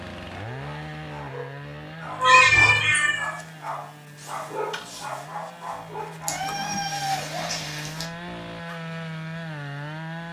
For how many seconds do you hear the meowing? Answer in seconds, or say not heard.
3 s.